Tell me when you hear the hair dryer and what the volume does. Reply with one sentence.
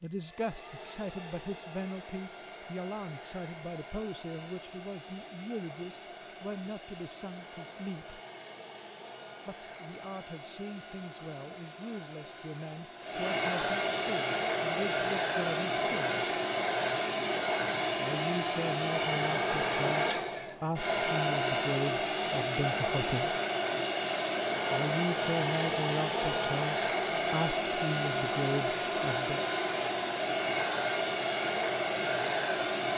The hair dryer can be heard from 0.0 to 32.9 s, getting louder.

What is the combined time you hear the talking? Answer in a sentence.
You can hear the talking for 25 seconds altogether.